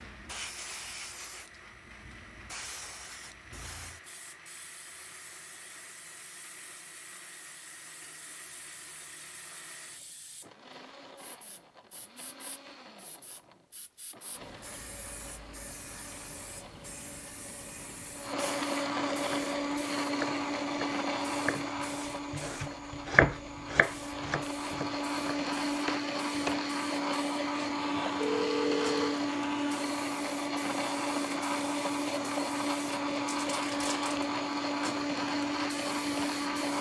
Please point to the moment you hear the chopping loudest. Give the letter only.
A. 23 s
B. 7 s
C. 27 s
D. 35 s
A.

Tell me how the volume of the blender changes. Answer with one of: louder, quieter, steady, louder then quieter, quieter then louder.
louder.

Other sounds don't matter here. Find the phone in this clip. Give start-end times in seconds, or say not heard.
27.8-29.2.